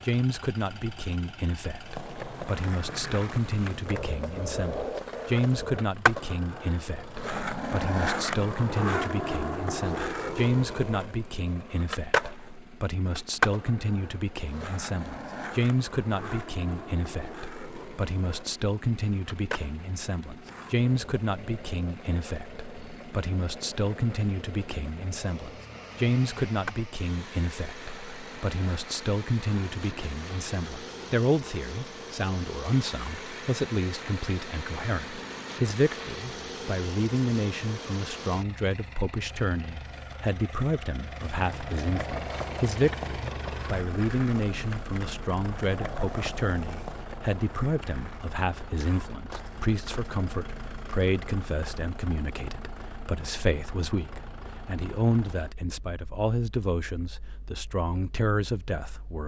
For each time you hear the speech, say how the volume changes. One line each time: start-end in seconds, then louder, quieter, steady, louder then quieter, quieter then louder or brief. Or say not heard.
0.1-59.2 steady.